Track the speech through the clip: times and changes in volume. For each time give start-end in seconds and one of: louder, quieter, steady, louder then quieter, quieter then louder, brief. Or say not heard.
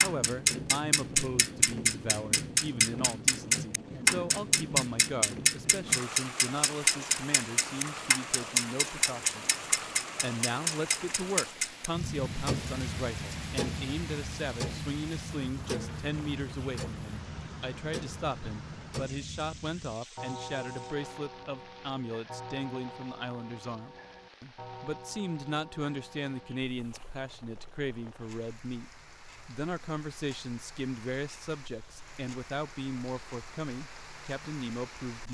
0.0-9.6 steady
10.2-35.3 steady.